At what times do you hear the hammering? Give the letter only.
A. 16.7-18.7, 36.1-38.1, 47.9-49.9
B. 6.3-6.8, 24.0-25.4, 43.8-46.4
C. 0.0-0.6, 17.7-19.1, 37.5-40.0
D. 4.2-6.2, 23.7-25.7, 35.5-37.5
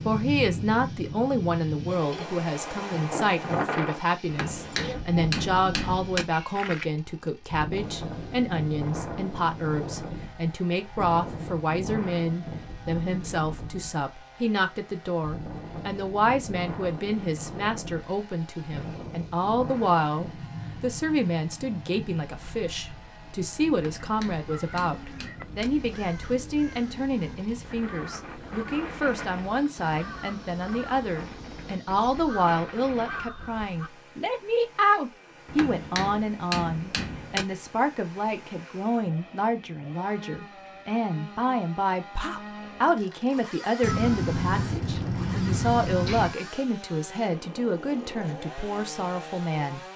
D.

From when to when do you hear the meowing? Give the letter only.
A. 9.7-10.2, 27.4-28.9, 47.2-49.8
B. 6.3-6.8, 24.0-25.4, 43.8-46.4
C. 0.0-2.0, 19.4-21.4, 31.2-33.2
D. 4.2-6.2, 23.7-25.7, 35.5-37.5
B.